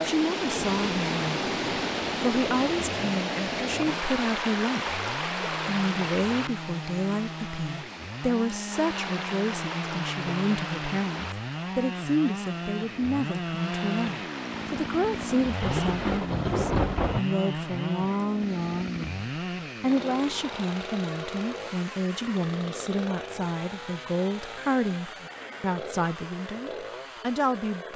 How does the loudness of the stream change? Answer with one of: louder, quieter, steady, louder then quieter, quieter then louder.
quieter.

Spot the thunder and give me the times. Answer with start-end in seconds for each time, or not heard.
15.6-17.2.